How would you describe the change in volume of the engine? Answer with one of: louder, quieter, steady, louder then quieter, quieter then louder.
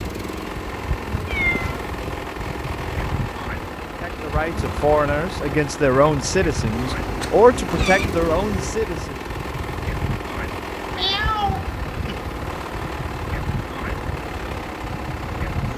steady.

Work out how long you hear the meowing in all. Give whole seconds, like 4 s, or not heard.
4 s.